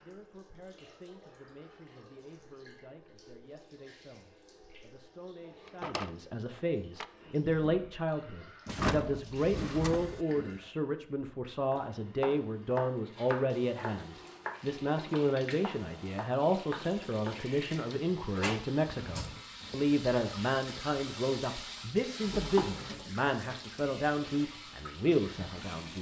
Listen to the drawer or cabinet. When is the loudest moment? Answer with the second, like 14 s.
9 s.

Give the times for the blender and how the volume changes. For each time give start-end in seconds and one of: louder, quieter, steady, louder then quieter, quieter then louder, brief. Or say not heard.
not heard.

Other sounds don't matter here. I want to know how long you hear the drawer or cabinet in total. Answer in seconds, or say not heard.
4 s.